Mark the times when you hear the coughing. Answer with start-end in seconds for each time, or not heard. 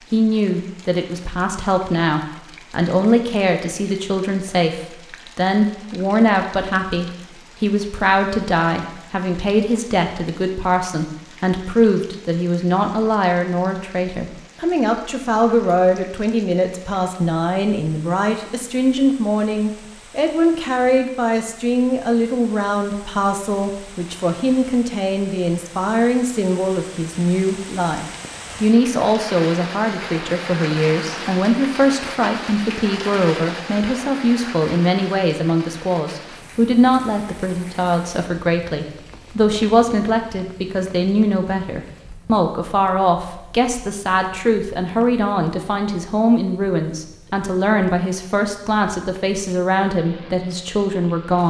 not heard.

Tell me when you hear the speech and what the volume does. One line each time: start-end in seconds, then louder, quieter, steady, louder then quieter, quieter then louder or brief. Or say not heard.
0.1-51.4 steady.